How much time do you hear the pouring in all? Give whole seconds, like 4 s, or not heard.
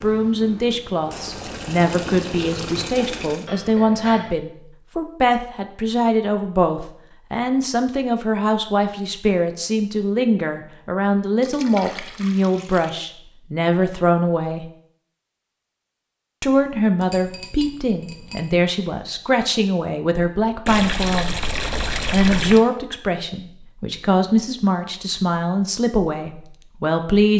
6 s.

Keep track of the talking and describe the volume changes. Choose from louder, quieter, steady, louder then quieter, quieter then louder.
steady.